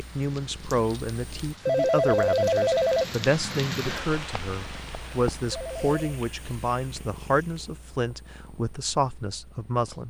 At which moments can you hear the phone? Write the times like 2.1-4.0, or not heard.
1.6-3.1, 5.5-6.0.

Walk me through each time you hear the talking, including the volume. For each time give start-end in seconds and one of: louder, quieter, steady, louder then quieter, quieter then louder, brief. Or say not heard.
0.0-10.0 steady.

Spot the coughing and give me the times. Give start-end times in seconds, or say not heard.
not heard.